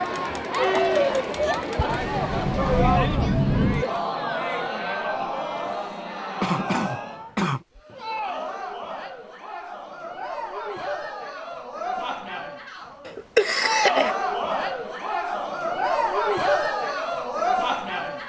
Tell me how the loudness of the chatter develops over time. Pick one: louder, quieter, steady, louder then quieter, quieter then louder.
quieter then louder.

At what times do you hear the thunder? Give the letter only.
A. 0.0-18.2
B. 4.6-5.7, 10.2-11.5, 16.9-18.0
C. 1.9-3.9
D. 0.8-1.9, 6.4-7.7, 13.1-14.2
C.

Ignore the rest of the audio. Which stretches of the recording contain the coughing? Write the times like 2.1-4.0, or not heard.
0.8-1.9, 6.4-7.7, 13.1-14.2.